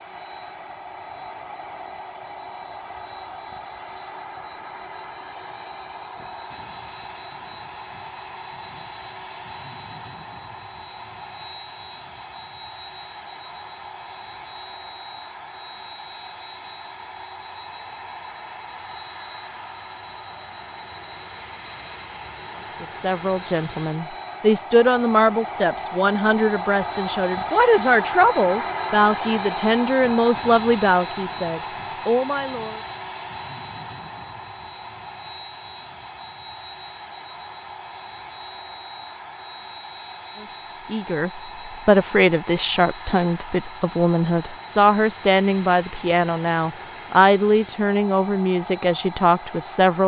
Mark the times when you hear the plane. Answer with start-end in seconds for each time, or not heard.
0.0-50.0.